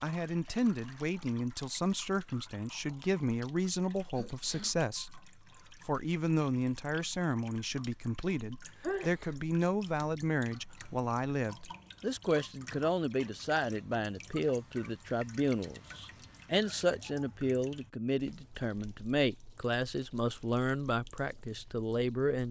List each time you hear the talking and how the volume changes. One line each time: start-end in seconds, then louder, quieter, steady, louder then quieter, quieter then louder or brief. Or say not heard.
0.0-22.4 steady.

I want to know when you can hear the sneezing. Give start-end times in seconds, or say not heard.
4.1-4.8, 8.8-9.4, 15.8-17.3.